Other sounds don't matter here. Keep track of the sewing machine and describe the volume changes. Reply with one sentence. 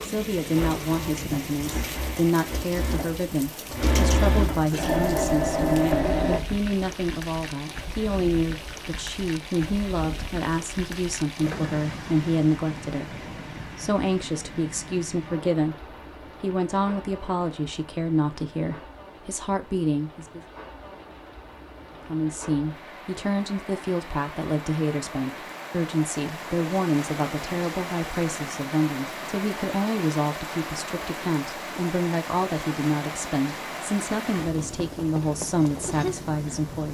The loudness of the sewing machine goes up.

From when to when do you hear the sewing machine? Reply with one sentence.
You can hear the sewing machine from 0.2 to 6.4 s.